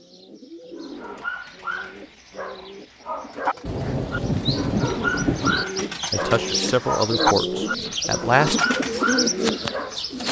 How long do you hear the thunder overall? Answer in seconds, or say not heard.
2 s.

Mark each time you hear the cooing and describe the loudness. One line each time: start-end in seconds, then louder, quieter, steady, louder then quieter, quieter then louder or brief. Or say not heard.
0.0-10.2 louder.